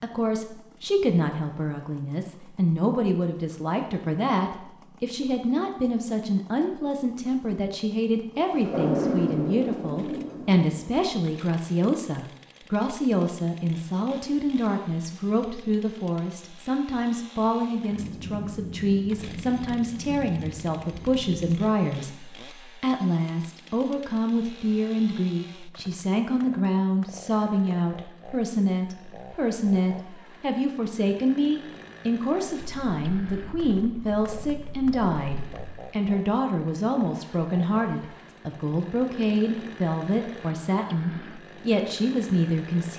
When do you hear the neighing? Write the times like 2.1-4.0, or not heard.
not heard.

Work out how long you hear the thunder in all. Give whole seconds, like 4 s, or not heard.
9 s.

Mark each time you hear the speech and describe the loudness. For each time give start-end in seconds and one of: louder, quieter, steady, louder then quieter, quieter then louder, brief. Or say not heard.
0.0-42.9 steady.